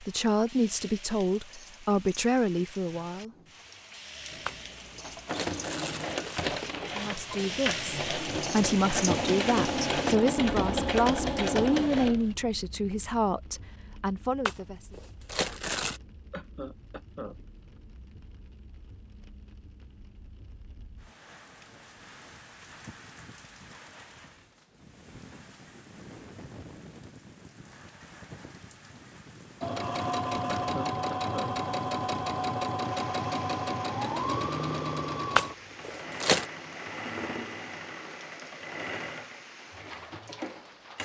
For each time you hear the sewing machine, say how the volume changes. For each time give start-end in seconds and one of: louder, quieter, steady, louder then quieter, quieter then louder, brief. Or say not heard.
4.3-12.3 louder
29.6-41.0 quieter.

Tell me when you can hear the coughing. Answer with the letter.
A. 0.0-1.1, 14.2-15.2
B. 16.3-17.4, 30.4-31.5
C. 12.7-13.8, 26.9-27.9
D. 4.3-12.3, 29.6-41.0
B.